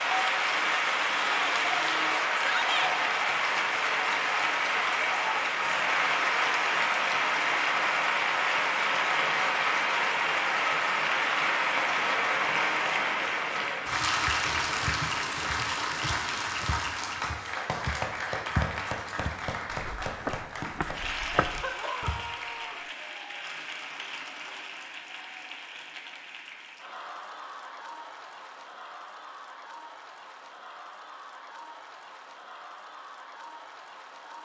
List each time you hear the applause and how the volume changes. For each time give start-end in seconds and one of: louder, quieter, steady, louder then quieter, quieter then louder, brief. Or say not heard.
0.0-34.4 quieter.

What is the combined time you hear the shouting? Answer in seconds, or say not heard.
2 s.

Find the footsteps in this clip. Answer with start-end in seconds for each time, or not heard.
14.2-22.2.